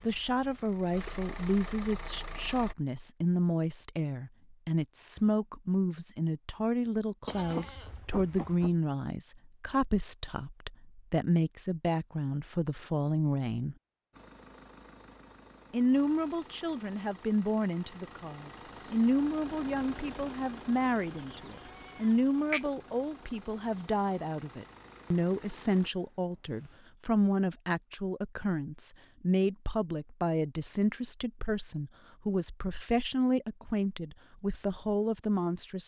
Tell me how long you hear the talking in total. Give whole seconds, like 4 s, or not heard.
34 s.